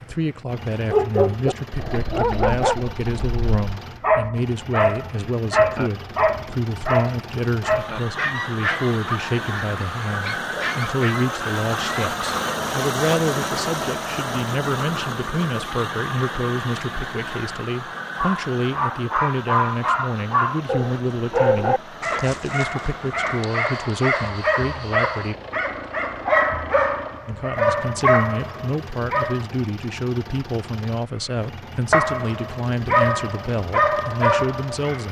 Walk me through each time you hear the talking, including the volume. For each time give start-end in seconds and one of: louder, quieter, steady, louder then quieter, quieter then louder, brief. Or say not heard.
0.0-25.4 steady
27.2-35.0 steady.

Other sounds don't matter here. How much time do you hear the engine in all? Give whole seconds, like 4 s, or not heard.
35 s.